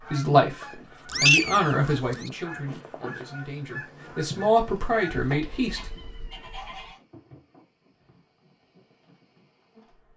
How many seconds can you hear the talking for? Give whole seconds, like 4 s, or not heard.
6 s.